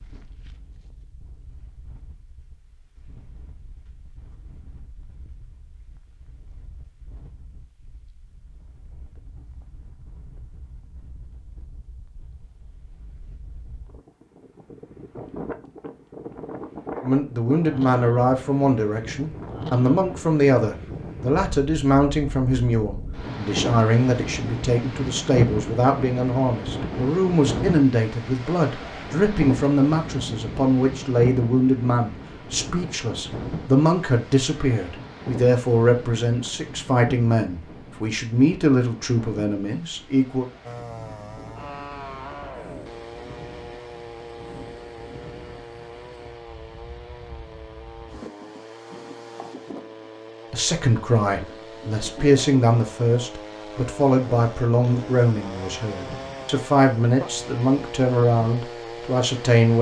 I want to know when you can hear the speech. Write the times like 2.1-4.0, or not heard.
17.0-40.5, 50.5-59.7.